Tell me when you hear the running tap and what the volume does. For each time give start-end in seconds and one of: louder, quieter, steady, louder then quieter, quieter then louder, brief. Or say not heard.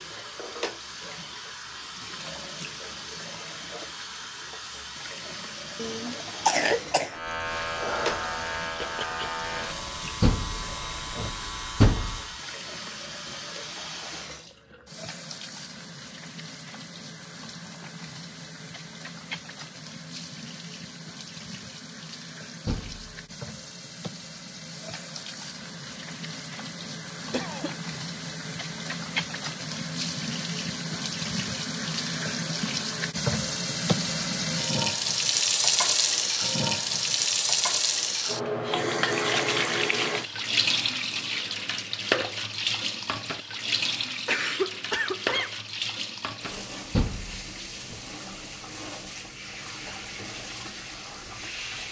0.0-51.8 louder then quieter.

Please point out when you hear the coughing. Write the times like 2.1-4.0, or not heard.
5.8-7.2, 27.3-28.0, 44.2-45.6.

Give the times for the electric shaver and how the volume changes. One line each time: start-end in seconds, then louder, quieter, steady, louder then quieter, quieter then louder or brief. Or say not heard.
7.0-12.4 quieter.